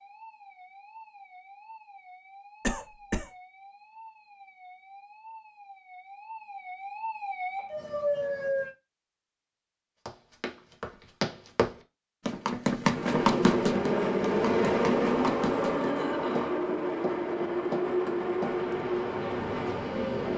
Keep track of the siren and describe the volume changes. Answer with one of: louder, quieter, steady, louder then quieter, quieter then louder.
louder.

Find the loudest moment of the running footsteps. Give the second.
13 s.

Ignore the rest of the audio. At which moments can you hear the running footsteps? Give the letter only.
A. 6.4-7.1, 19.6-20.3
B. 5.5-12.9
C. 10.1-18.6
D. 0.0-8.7
C.